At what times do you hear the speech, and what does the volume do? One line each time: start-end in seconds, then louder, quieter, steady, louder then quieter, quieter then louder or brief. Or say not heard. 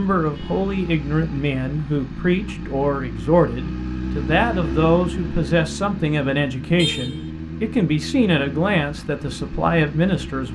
0.0-10.5 steady.